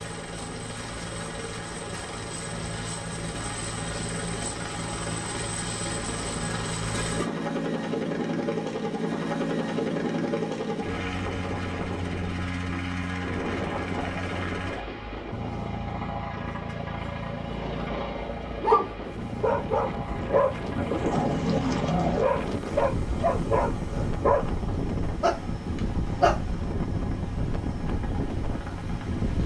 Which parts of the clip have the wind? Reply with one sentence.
You can hear the wind from 13.2 to 29.4 s.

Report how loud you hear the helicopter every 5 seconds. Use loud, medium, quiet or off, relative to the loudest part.
medium, loud, loud, medium, medium, medium.